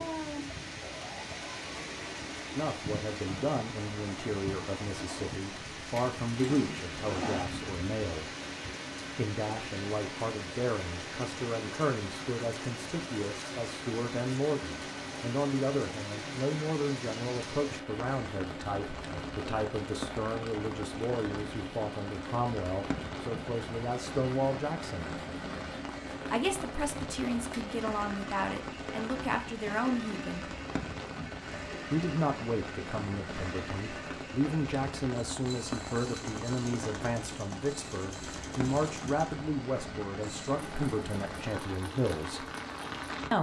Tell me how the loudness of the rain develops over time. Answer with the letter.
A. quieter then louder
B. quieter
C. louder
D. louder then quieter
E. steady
E.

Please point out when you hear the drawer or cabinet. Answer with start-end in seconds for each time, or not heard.
6.5-7.5.